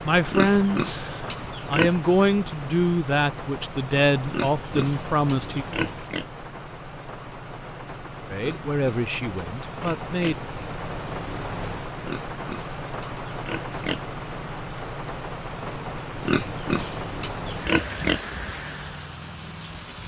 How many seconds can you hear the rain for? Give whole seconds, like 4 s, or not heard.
20 s.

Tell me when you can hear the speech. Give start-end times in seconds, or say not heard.
0.1-5.7, 8.3-10.3.